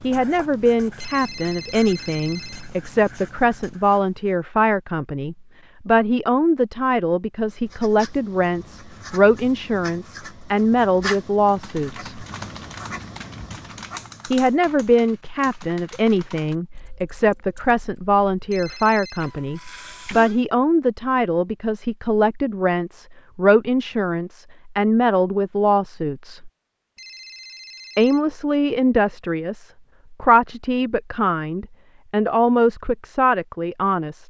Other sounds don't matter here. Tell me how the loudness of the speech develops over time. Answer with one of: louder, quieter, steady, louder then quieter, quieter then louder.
steady.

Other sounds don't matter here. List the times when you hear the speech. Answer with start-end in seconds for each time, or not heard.
0.0-12.2, 14.2-26.5, 27.9-34.2.